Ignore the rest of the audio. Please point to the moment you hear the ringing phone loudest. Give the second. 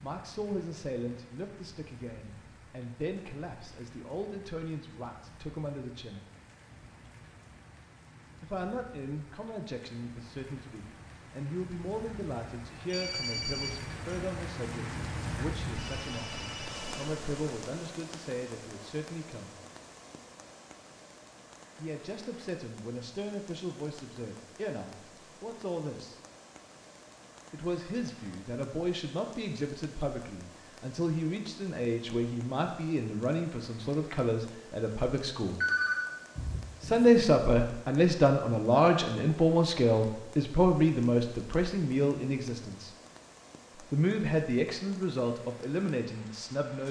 36 s.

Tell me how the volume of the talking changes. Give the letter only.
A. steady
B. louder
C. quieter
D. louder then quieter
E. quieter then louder
B.